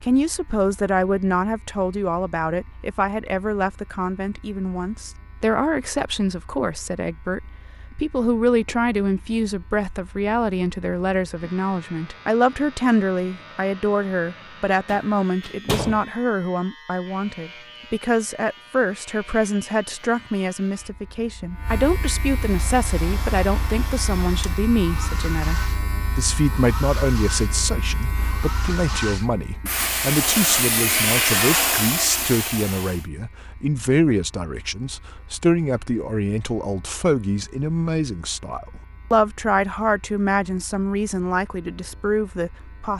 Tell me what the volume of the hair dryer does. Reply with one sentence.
The loudness of the hair dryer goes up.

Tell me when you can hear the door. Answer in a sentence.
You can hear the door from 14.8 to 16.1 s.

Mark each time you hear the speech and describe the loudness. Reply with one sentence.
You can hear the speech from 0.0 to 42.9 s, at a steady volume.